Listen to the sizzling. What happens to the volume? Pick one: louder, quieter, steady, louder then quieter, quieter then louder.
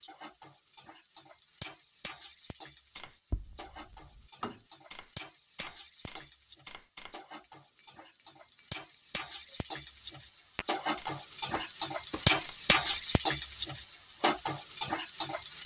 louder.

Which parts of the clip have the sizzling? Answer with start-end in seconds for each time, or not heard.
0.0-15.6.